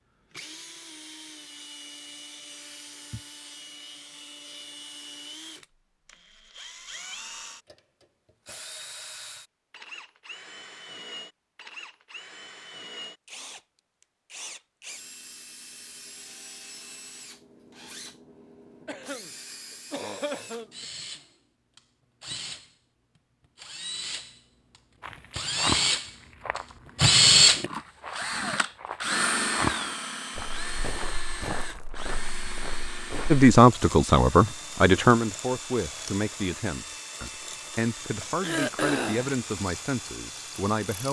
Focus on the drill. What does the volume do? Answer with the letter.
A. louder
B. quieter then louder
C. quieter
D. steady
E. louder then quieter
E.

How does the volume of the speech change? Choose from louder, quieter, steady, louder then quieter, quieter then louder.
quieter.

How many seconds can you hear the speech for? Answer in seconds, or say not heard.
8 s.